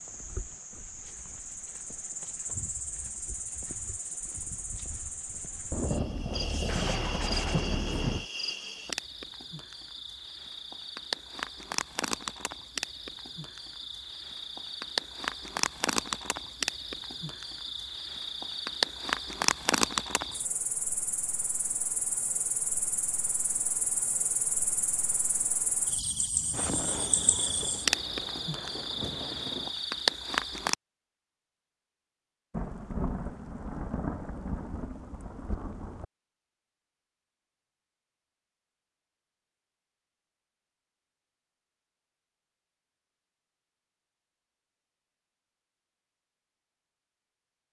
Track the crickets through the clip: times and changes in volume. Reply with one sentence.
You can hear the crickets from 0.0 to 30.8 s, getting louder.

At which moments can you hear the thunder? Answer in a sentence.
You can hear the thunder from 5.7 to 8.2 s, from 26.5 to 29.7 s and from 32.5 to 36.0 s.